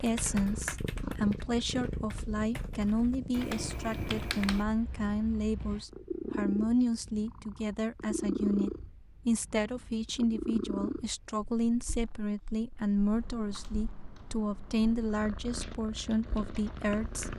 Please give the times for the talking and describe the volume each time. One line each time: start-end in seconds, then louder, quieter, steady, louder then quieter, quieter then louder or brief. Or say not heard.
0.0-17.3 steady.